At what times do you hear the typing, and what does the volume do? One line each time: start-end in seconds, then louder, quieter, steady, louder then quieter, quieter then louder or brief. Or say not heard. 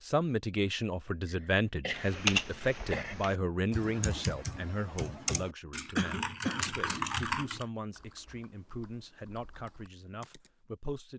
1.9-10.5 quieter.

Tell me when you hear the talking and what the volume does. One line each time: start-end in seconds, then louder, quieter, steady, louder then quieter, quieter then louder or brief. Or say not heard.
0.0-11.1 quieter.